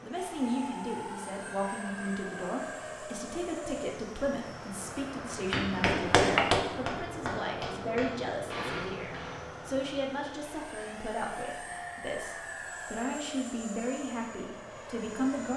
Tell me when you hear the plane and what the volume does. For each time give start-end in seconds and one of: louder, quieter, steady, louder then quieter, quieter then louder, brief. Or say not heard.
0.0-15.5 steady.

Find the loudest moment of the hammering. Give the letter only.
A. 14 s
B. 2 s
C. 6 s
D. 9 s
C.